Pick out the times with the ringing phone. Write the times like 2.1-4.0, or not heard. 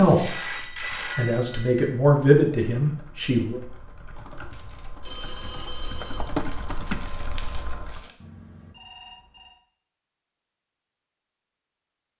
0.1-1.9, 4.5-6.3, 8.2-9.6.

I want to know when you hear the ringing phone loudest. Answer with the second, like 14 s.
1 s.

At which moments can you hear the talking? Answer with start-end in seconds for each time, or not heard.
0.0-3.6.